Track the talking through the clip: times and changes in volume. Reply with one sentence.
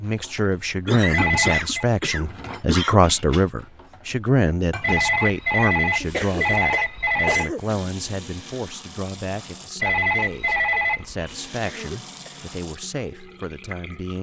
The talking can be heard from 0.0 to 14.1 s, getting quieter.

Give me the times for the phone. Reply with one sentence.
The phone can be heard from 1.1 to 1.9 s, from 4.8 to 7.5 s and from 9.8 to 11.3 s.